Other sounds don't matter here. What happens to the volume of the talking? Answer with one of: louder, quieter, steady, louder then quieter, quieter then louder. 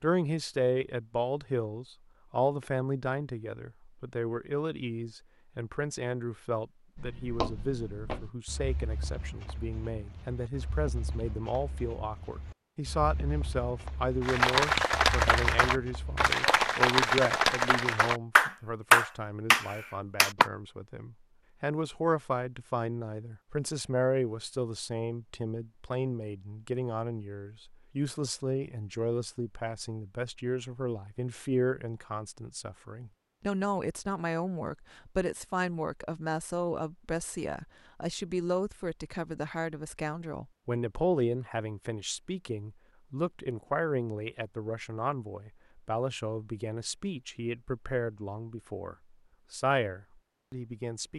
steady.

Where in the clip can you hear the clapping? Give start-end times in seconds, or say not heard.
14.2-20.5.